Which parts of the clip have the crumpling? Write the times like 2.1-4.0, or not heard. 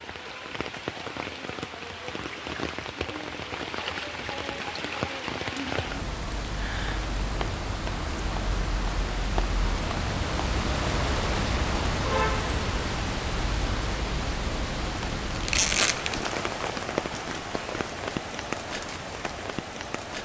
15.3-16.3.